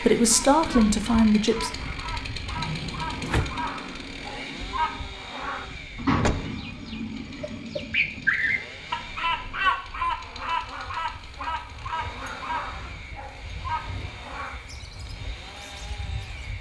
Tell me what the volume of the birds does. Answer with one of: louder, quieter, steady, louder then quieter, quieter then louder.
louder then quieter.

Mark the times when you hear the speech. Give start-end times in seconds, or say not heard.
0.0-1.7.